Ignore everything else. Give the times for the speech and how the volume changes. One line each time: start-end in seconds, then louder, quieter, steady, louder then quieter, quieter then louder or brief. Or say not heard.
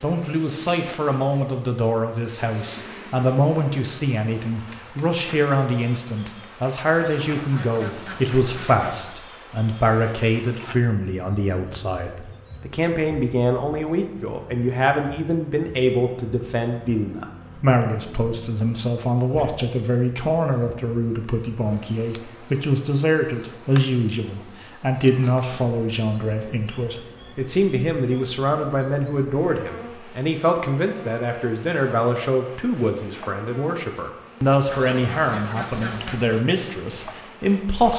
0.0-37.9 steady.